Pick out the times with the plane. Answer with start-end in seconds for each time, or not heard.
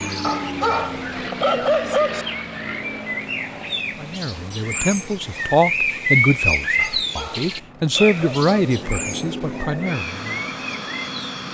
0.0-11.4.